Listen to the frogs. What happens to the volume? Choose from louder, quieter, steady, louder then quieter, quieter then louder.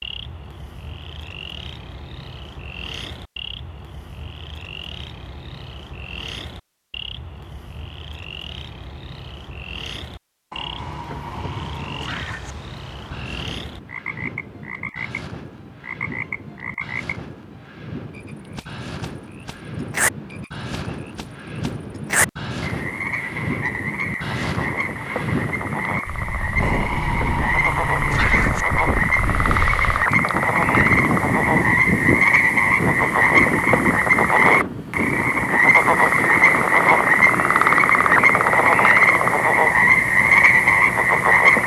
louder.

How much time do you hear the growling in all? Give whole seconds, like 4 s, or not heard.
4 s.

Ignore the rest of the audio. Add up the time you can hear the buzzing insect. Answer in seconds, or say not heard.
not heard.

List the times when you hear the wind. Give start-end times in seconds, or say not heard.
10.8-41.6.